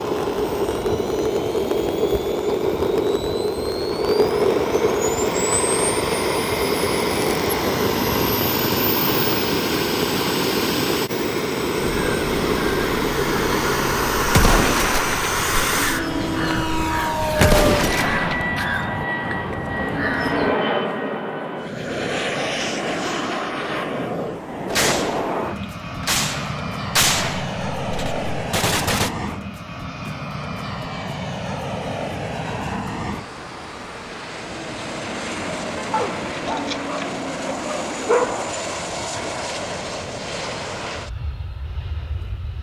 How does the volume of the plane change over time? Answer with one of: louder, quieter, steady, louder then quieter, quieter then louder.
quieter.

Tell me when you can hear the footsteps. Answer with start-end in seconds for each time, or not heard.
not heard.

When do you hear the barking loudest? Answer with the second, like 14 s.
38 s.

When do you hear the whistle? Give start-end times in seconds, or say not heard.
not heard.